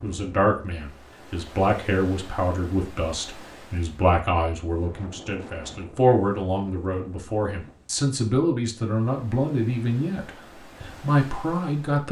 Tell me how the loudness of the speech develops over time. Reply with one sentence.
The volume of the speech stays about the same.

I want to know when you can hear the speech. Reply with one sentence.
You can hear the speech from 0.0 to 12.0 s.